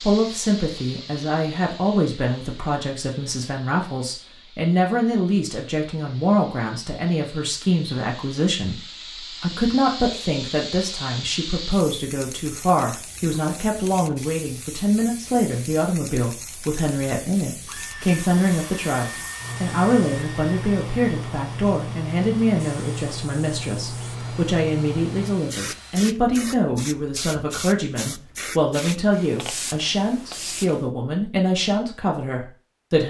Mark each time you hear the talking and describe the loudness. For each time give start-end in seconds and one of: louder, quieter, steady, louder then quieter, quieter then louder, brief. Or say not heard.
0.0-33.0 steady.